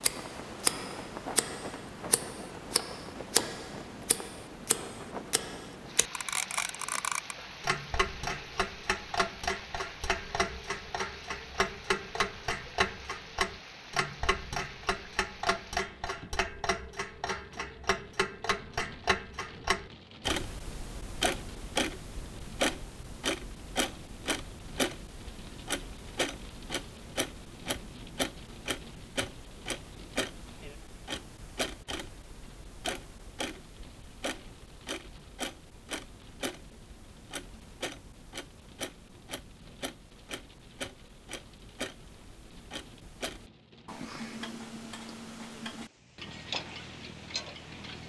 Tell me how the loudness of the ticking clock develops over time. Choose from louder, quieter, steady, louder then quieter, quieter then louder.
quieter.